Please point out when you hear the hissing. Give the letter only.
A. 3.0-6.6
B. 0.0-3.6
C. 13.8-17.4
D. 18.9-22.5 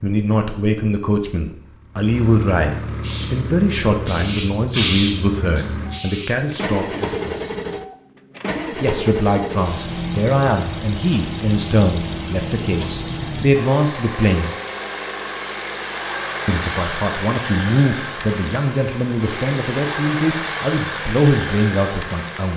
A.